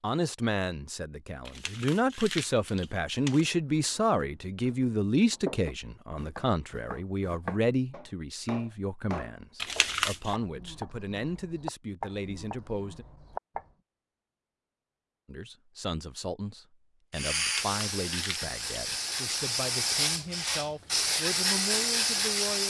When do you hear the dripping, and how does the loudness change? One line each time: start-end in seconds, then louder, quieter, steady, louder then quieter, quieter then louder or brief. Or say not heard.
not heard.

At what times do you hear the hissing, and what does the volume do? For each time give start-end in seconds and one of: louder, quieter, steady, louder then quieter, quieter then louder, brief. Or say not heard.
17.1-22.6 louder.